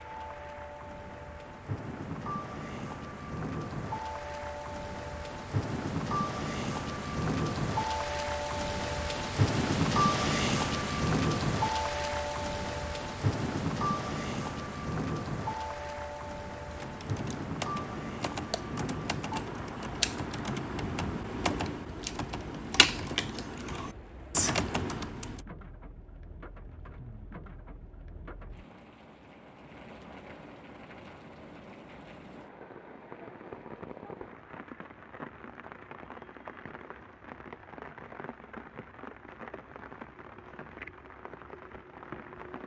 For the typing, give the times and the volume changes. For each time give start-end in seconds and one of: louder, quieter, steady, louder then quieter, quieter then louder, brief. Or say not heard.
16.7-25.4 louder.